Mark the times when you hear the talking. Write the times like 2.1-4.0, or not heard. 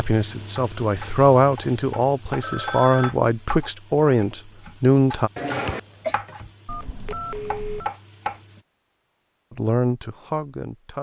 0.0-5.3, 9.6-10.9.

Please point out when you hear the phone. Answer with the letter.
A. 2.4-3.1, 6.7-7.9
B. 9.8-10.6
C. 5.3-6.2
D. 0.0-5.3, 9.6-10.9
A.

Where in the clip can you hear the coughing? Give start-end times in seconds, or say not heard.
5.3-6.2.